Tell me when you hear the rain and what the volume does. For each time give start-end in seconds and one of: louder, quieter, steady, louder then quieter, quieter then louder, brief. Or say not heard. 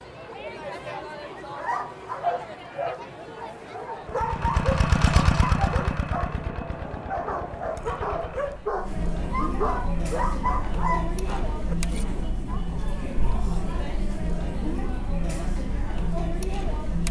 not heard.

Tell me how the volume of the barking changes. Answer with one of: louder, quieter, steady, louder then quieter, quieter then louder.
steady.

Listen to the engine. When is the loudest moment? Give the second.
5 s.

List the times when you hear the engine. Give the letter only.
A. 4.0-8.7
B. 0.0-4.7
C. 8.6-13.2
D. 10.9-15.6
A.